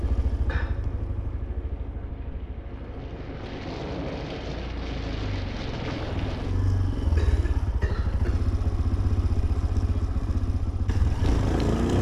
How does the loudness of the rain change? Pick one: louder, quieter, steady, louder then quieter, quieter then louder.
louder.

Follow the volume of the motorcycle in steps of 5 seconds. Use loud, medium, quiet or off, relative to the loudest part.
quiet, medium, loud.